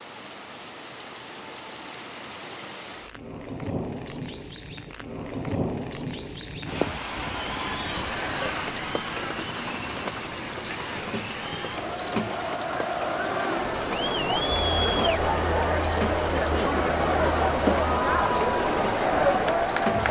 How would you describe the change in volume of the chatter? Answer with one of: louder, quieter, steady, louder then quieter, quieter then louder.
louder.